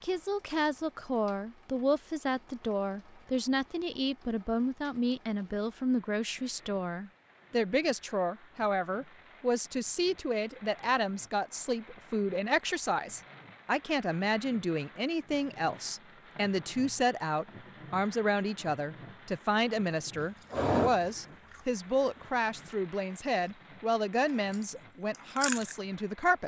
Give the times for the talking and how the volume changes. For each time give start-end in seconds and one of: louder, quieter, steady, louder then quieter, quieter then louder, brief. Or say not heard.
0.0-26.4 steady.